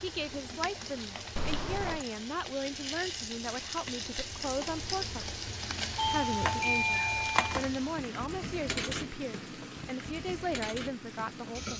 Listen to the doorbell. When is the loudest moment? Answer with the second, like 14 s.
7 s.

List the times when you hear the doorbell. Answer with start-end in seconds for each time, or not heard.
1.4-2.0, 6.0-7.7.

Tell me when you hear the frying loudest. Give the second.
7 s.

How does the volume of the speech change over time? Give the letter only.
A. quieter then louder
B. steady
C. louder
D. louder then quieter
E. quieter
B.